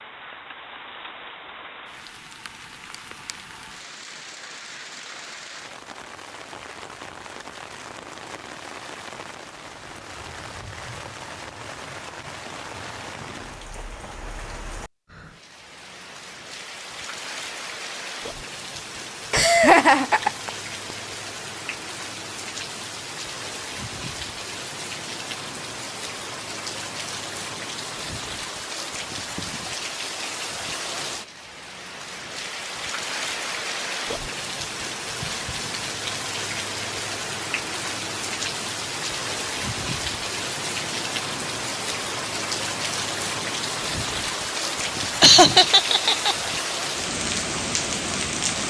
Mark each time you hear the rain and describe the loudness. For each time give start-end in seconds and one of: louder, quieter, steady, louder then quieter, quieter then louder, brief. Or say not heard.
0.0-48.6 louder.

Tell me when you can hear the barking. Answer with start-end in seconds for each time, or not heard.
not heard.